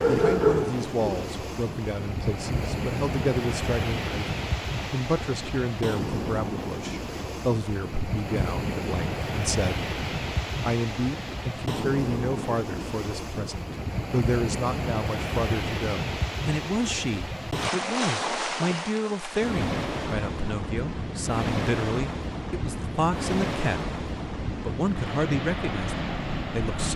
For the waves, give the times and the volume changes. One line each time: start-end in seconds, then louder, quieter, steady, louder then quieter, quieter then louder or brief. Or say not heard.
0.0-26.9 steady.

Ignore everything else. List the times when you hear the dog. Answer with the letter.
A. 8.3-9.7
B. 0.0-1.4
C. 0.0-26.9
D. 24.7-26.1
B.